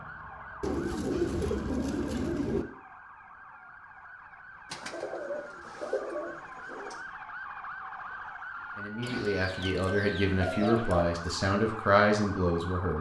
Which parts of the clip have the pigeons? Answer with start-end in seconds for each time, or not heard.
0.6-2.6, 4.7-7.0, 9.0-11.1.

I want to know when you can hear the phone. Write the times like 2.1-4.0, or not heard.
not heard.